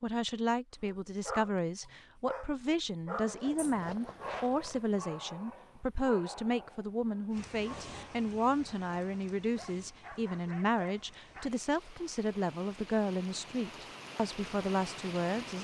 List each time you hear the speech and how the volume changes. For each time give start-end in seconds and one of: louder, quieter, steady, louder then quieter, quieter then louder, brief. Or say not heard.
0.0-15.5 steady.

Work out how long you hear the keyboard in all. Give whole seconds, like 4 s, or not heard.
not heard.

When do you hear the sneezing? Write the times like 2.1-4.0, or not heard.
not heard.